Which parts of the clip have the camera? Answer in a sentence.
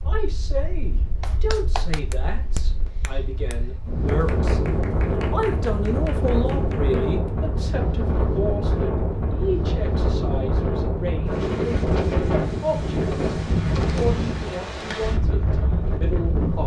The camera can't be heard in this clip.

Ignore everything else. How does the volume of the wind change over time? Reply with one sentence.
The volume of the wind goes up.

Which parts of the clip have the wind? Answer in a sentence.
You can hear the wind from 0.0 to 16.6 s.